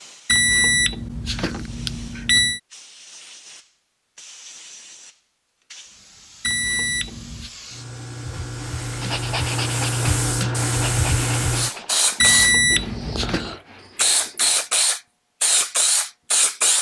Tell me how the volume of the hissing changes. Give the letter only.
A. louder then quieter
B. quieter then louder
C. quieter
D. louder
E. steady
D.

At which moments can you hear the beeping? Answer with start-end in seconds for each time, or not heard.
0.2-2.6, 6.4-7.5, 12.2-13.6.